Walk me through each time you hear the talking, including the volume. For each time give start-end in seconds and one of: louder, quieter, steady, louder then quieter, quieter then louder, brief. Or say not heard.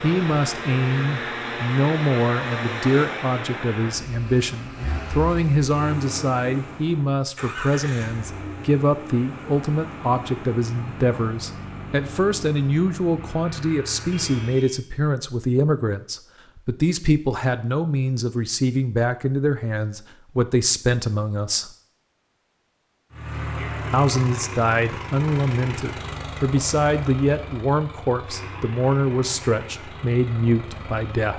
0.0-21.7 steady
23.9-31.3 steady.